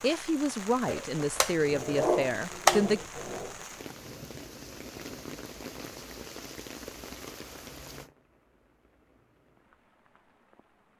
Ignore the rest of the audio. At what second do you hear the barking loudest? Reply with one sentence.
The loudest moment of the barking is at 3 seconds.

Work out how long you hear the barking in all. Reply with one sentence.
You can hear the barking for 3 seconds altogether.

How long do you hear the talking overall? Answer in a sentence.
You can hear the talking for 3 seconds altogether.